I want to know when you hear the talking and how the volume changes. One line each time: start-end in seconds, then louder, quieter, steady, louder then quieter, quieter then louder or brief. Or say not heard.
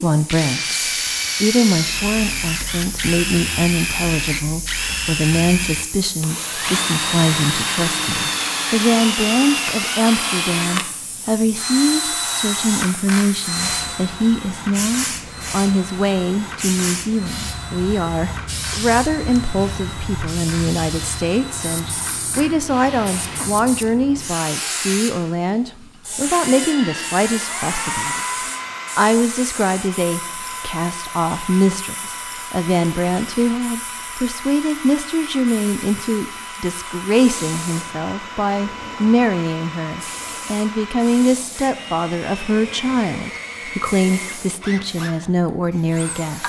0.0-0.8 brief
1.4-46.4 steady.